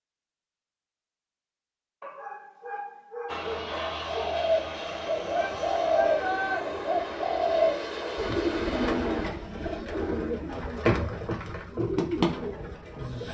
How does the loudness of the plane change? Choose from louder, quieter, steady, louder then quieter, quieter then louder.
steady.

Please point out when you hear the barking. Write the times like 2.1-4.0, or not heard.
2.0-4.4.